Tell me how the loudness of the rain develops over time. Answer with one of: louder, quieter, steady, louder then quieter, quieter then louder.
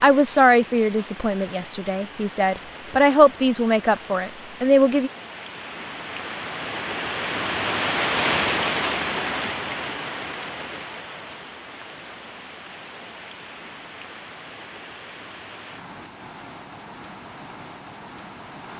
louder then quieter.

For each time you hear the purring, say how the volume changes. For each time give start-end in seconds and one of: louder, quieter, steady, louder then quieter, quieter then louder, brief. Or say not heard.
not heard.